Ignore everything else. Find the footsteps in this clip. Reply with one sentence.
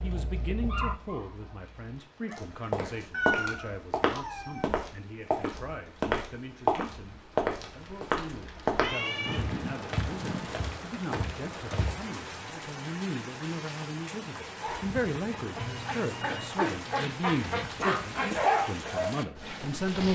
The footsteps can be heard from 2.3 to 12.0 s.